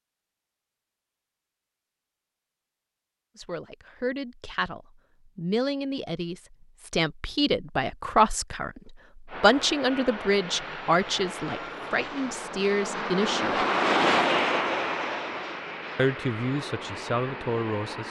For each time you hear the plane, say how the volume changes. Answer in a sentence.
You can hear the plane from 9.2 to 18.0 s, getting louder then quieter.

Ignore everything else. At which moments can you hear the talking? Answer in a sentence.
You can hear the talking from 3.4 to 13.7 s and from 15.9 to 18.0 s.